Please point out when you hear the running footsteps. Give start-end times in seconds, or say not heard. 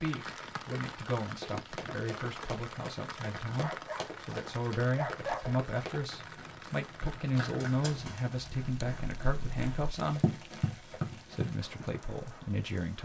1.3-11.8.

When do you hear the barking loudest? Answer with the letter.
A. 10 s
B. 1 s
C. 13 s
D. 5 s
D.